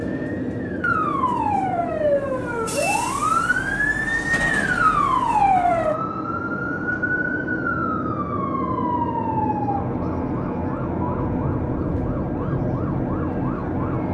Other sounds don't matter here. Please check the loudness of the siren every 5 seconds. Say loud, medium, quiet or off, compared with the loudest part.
loud, loud, medium.